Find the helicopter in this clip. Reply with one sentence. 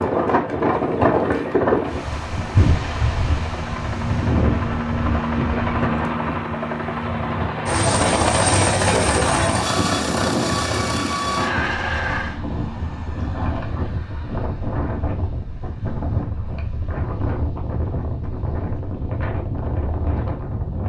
The helicopter can be heard from 0.0 to 12.4 s.